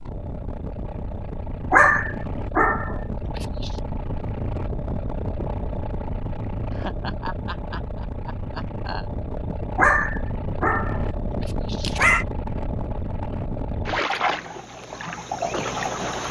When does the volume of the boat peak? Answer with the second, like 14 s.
14 s.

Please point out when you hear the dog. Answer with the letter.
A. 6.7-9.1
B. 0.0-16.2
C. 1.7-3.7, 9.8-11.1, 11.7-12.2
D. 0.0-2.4
C.